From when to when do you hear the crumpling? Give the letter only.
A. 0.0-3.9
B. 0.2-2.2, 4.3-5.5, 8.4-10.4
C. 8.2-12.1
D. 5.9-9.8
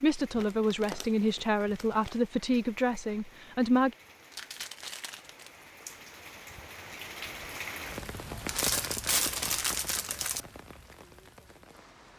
B.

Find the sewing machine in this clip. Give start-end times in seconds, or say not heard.
not heard.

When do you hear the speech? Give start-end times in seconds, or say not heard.
0.0-3.9.